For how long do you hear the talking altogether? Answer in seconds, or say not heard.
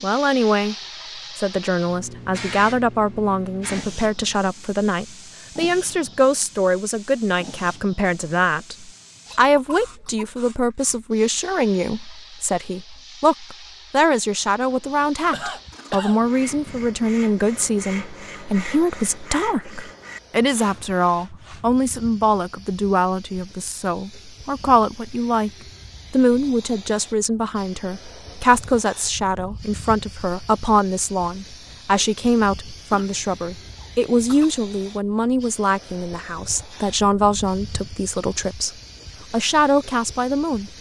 39 s.